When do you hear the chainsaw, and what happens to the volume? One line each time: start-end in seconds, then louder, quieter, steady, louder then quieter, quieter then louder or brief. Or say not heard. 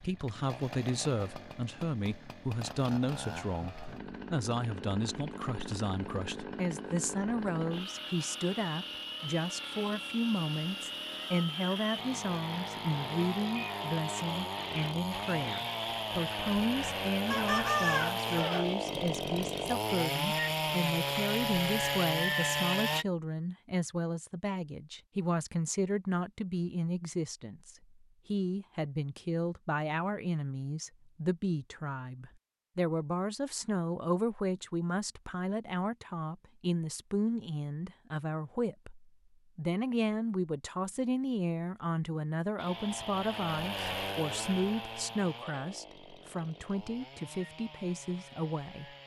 0.0-23.1 louder
42.5-49.0 quieter.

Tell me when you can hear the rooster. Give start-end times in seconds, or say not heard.
17.3-18.8.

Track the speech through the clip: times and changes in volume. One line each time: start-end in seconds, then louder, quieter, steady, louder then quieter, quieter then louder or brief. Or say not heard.
0.0-48.9 steady.